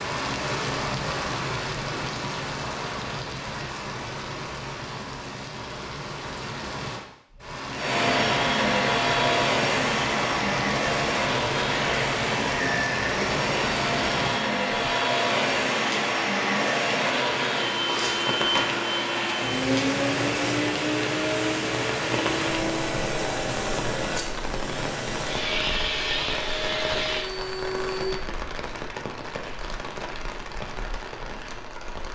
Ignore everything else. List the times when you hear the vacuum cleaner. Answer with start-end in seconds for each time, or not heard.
7.7-28.2.